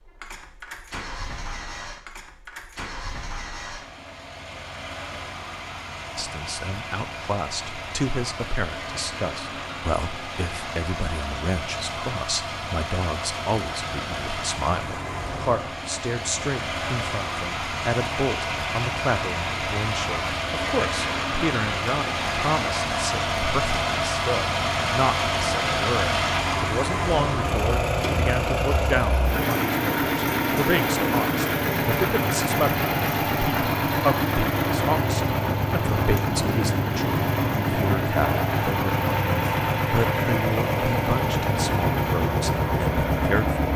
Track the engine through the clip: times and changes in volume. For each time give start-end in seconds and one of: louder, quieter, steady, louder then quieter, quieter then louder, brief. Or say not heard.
0.0-43.7 louder.